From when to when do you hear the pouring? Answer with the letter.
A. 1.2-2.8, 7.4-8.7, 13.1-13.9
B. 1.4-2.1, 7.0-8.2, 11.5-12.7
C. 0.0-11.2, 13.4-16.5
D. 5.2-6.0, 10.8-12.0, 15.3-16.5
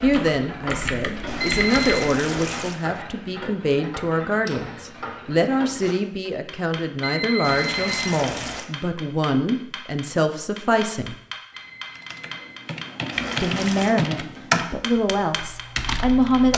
A.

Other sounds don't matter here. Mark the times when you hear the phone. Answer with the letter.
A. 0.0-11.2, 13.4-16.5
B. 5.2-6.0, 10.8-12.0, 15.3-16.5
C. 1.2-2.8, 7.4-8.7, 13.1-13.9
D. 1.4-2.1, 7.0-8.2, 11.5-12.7
D.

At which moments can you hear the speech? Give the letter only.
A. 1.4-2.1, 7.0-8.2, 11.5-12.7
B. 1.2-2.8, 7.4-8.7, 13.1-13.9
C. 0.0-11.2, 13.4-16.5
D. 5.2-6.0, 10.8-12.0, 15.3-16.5
C.